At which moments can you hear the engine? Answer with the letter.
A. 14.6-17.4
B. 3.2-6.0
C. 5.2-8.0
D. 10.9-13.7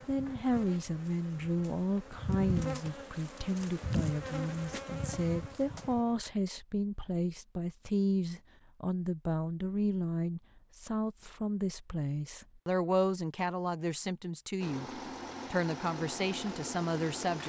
A.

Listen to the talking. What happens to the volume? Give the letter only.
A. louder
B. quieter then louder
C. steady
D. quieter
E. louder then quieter
C.